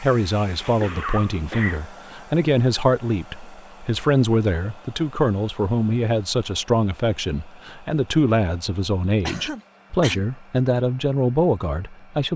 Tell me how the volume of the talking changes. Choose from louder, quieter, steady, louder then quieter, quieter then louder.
steady.